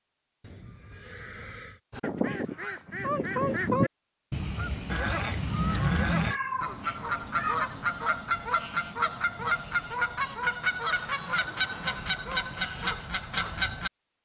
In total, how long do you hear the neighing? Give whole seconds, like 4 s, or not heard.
4 s.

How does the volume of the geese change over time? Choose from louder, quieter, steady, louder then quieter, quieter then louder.
steady.